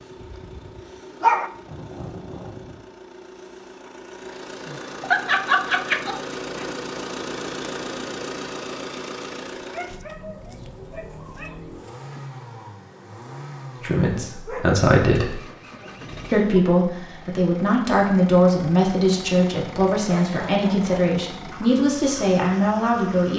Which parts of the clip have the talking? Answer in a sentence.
The talking can be heard from 13.8 to 15.4 s and from 16.3 to 23.3 s.